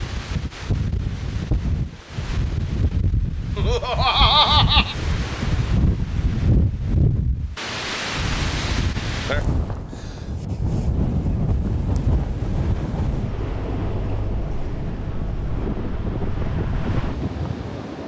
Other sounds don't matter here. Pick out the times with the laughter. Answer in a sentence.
The laughter can be heard from 3.5 to 5.0 s.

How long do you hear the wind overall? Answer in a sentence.
You can hear the wind for 18 seconds altogether.